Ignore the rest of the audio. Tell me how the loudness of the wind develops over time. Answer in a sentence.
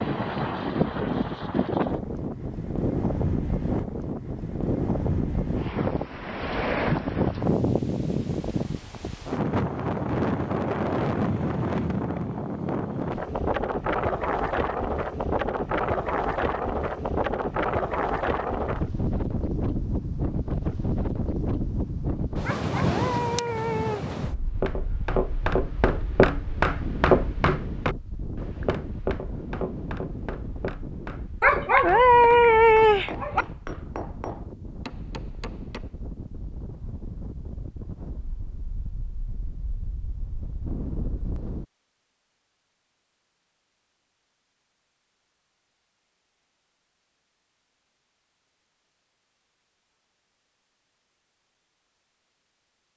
The loudness of the wind goes down.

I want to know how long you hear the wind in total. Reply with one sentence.
You can hear the wind for 42 seconds altogether.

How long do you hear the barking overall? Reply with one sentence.
You can hear the barking for 4 seconds altogether.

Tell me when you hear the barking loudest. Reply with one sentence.
The volume of the barking peaks at 32 seconds.